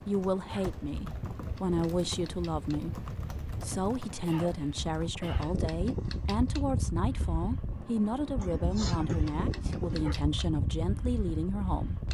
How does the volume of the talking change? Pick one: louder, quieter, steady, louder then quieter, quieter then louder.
steady.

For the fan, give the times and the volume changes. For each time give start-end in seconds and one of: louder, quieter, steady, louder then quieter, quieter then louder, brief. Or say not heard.
0.0-12.0 louder.